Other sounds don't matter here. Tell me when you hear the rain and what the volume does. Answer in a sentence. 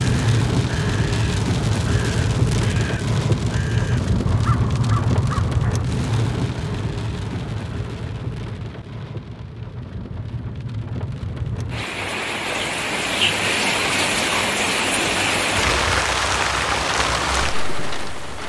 The rain can be heard from 0.0 to 18.4 s, getting quieter then louder.